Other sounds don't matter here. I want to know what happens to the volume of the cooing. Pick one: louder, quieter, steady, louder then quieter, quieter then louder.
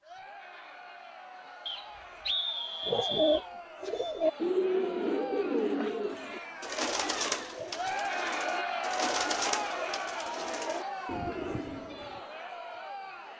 quieter.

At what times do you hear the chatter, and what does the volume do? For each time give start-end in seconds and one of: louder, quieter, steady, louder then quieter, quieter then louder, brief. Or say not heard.
0.0-13.3 louder then quieter.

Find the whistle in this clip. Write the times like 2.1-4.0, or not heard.
1.6-3.5.